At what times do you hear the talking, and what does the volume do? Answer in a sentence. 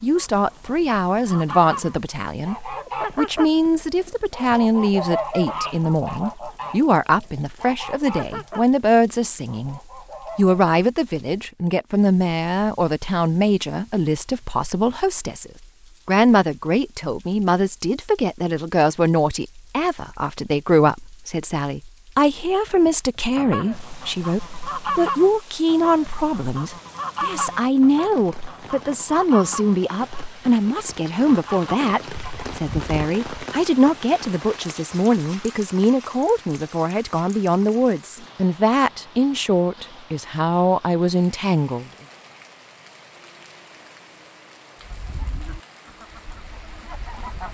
You can hear the talking from 0.0 to 41.9 s, at a steady volume.